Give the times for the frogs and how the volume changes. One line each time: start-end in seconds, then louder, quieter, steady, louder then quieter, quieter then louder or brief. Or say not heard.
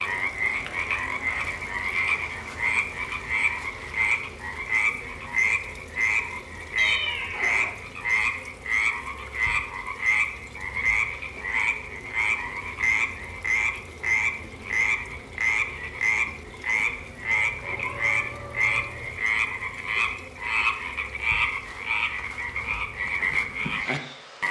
0.0-24.4 steady.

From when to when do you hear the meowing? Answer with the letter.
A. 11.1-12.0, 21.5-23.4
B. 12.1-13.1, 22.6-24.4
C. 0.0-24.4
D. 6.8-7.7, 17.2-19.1
D.